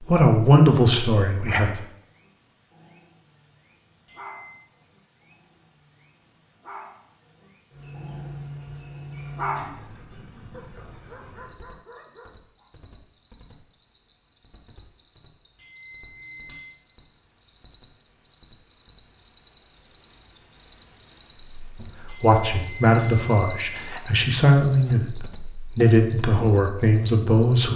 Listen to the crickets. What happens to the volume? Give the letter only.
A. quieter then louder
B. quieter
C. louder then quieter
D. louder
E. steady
D.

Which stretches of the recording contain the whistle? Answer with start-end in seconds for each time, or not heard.
not heard.